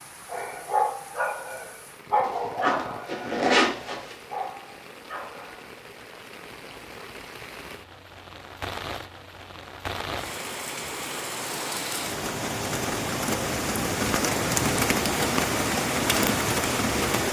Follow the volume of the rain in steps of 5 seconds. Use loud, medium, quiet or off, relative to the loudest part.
quiet, quiet, loud, loud.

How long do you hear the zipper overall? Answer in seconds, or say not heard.
2 s.